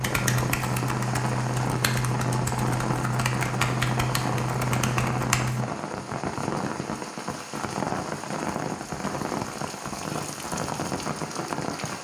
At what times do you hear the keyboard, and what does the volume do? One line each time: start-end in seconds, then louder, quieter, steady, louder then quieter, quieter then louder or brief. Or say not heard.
0.0-5.7 steady.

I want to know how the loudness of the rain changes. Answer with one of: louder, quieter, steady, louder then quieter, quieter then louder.
steady.